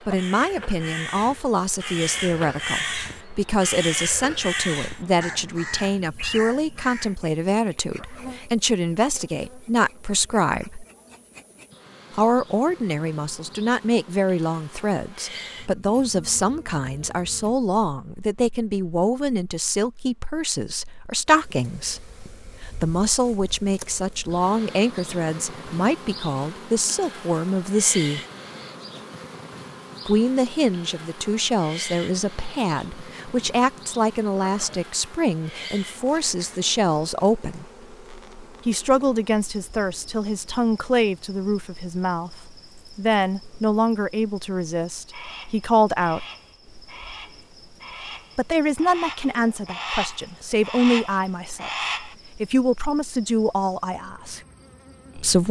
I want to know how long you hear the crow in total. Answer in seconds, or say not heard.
14 s.